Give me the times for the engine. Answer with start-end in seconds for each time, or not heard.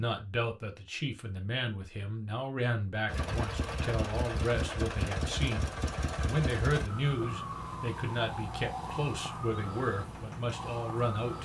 3.0-6.9.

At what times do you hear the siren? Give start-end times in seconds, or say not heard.
6.8-11.3.